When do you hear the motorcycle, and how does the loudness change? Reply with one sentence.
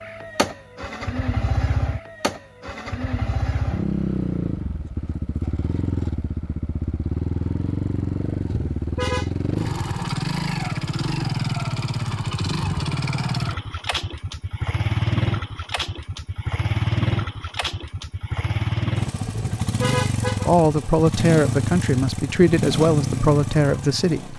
You can hear the motorcycle from 0.0 to 24.3 s, at a steady volume.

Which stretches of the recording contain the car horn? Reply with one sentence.
The car horn can be heard from 8.4 to 9.3 s and from 19.2 to 20.5 s.